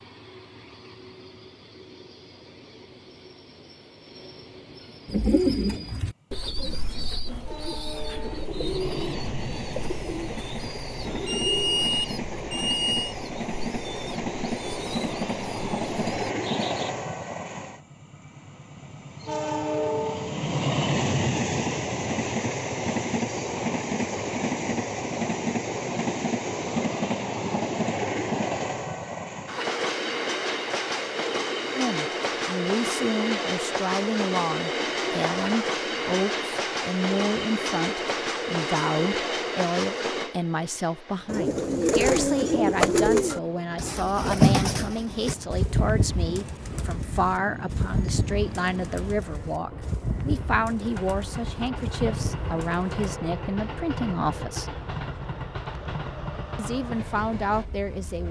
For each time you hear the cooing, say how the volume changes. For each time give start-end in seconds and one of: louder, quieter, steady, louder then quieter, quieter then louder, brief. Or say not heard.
5.0-16.9 quieter
41.3-53.0 quieter.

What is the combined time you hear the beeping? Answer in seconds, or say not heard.
2 s.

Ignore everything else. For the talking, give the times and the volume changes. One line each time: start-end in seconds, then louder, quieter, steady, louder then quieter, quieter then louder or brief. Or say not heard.
31.7-54.8 steady
56.5-58.2 brief.